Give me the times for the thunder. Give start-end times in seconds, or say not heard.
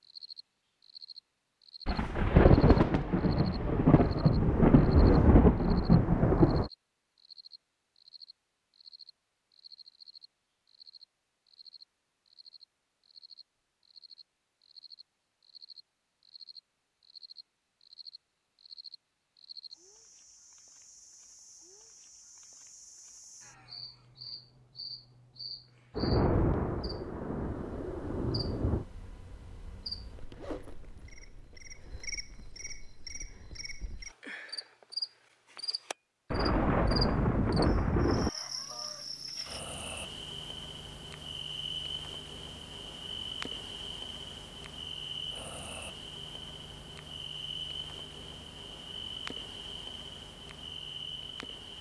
1.9-6.7, 25.9-28.9, 36.3-38.3.